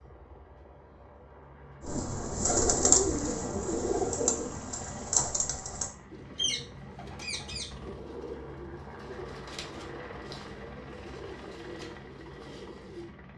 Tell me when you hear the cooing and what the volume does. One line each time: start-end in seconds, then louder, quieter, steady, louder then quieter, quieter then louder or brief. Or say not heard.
1.8-13.2 quieter.